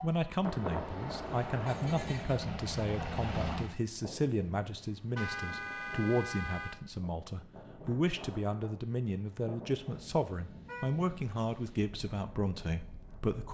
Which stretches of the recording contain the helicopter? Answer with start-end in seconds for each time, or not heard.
0.0-3.8.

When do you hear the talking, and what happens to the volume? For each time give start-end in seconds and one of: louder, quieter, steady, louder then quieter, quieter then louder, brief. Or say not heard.
0.0-13.4 steady.